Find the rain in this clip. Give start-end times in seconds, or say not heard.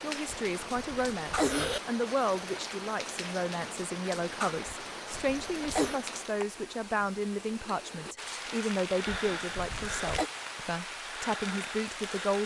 0.0-12.4.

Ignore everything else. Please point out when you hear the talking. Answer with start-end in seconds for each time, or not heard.
0.0-12.4.